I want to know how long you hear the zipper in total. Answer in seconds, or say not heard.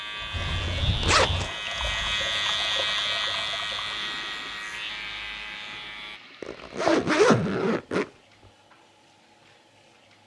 3 s.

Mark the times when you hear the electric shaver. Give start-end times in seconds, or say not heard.
0.0-6.2.